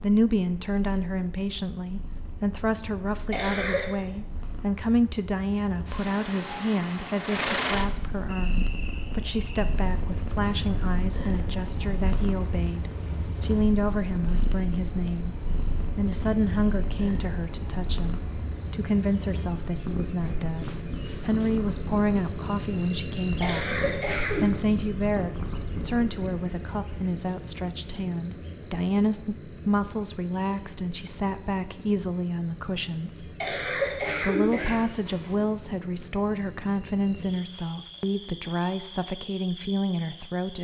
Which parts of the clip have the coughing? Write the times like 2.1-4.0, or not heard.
3.3-3.9, 23.4-24.6, 33.4-35.3.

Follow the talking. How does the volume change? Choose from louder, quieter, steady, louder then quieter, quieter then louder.
steady.